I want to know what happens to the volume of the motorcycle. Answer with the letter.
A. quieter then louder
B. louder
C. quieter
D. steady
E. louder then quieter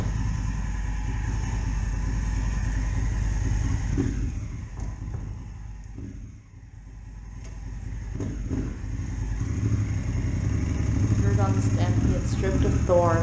A.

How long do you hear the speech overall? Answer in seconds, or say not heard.
2 s.